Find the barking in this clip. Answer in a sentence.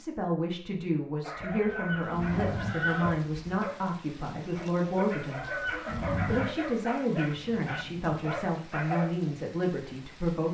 The barking can be heard from 1.2 to 9.3 s.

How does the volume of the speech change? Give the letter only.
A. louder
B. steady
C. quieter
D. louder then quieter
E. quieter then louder
B.